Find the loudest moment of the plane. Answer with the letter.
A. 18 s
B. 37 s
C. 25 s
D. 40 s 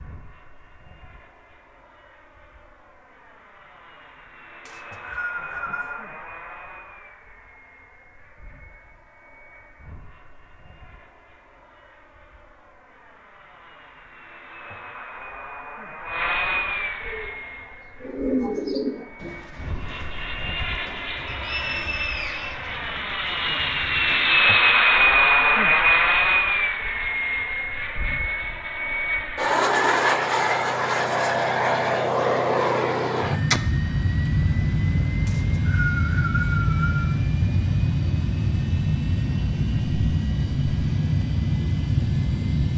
C.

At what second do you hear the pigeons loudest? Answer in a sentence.
The loudest moment of the pigeons is at 18 seconds.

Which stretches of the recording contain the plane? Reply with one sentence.
The plane can be heard from 0.0 to 42.7 s.